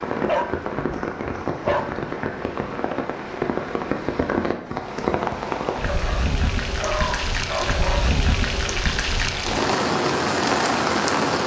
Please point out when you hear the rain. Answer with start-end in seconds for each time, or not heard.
0.0-11.4.